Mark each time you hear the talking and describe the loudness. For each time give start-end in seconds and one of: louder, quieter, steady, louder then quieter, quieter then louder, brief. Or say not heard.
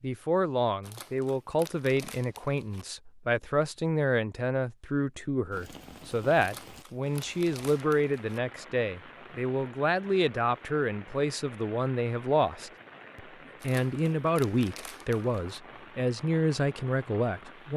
0.0-17.7 steady.